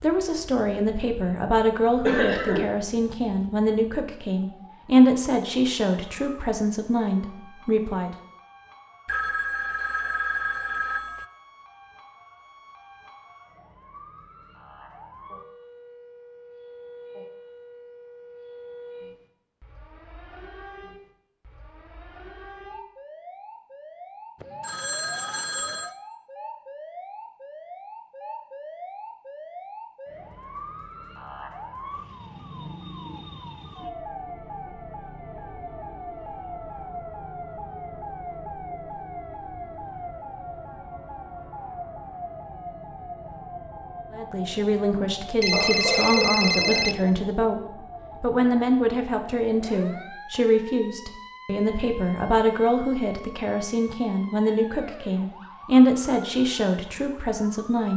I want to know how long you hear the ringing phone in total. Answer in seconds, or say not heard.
5 s.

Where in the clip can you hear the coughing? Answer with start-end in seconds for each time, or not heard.
2.0-2.6, 45.5-47.0.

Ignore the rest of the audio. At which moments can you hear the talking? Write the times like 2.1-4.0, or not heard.
0.0-8.1, 44.1-47.6, 48.2-57.9.